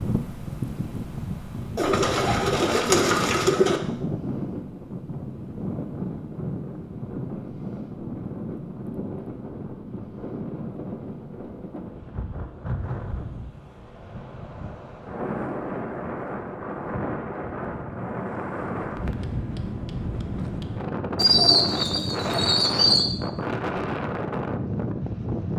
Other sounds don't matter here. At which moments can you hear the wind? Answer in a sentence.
You can hear the wind from 0.0 to 25.5 s.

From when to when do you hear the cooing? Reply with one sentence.
The cooing can be heard from 1.8 to 3.8 s and from 21.1 to 23.1 s.